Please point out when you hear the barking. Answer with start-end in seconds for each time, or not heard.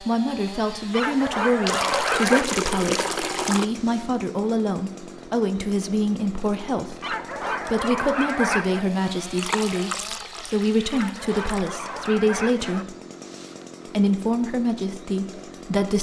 0.9-2.5, 7.0-8.8, 10.9-12.8.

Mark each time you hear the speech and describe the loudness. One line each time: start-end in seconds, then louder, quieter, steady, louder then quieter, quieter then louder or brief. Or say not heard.
0.0-12.9 steady
13.8-15.9 brief.